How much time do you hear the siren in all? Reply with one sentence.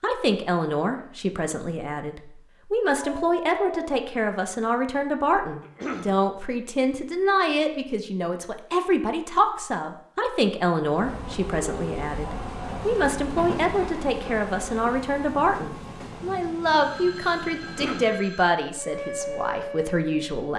You can hear the siren for 2 seconds altogether.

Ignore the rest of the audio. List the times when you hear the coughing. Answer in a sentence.
The coughing can be heard from 5.6 to 6.2 s and from 17.6 to 18.1 s.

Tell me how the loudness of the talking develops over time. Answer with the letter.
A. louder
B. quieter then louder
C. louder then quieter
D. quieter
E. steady
E.